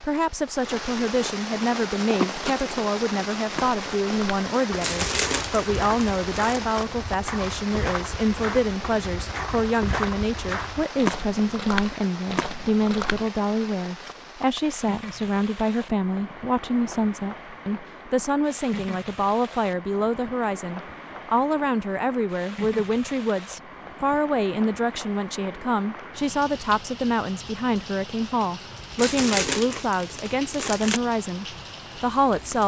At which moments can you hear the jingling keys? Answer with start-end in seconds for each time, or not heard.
not heard.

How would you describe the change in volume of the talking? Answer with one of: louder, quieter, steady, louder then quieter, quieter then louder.
steady.